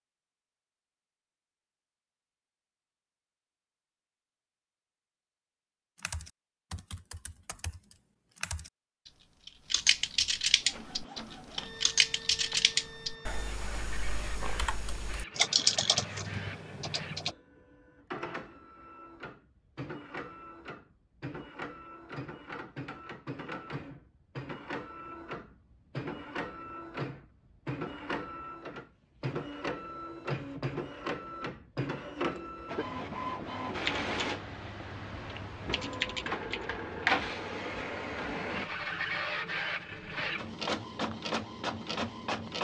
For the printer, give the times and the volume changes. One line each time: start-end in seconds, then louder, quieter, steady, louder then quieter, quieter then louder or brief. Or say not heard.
10.6-42.5 louder.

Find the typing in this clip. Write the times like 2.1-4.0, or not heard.
6.0-17.3, 33.8-36.6.